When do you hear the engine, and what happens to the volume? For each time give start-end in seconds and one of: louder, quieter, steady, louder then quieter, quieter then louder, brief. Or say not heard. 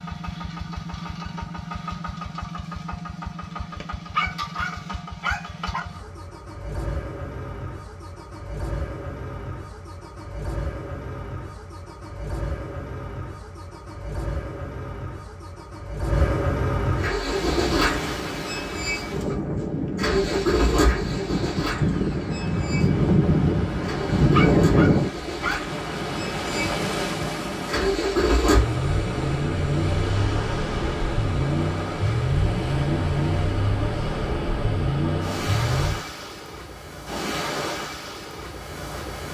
0.0-36.0 louder.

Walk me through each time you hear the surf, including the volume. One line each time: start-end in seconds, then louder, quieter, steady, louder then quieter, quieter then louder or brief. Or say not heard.
17.1-39.3 louder then quieter.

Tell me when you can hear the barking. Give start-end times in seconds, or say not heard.
4.2-5.8, 24.3-25.6.